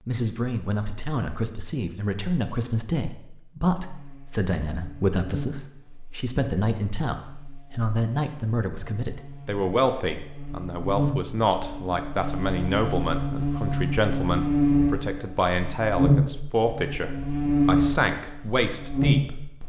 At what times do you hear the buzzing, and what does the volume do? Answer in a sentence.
You can hear the buzzing from 3.8 to 19.6 s, getting quieter then louder.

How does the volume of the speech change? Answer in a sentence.
The volume of the speech stays about the same.